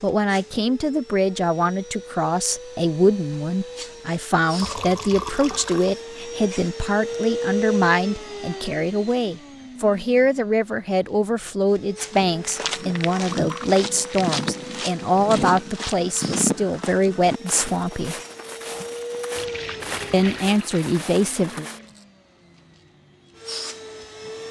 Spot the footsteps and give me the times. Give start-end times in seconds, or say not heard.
12.1-22.1.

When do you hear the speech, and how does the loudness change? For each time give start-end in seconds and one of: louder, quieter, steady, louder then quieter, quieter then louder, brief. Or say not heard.
0.0-18.1 steady
20.1-21.6 brief.